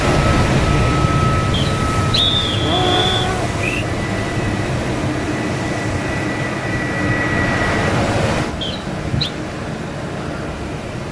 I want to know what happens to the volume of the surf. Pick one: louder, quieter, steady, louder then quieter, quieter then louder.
quieter.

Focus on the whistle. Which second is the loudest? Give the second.
2 s.